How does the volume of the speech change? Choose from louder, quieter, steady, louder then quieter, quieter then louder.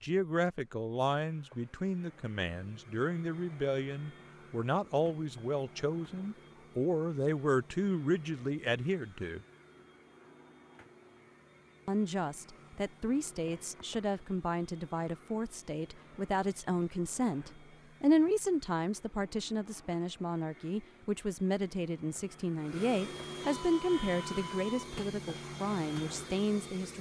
steady.